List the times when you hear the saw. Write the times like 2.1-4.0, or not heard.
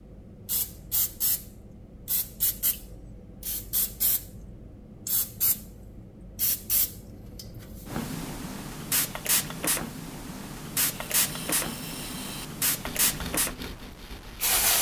10.9-14.7.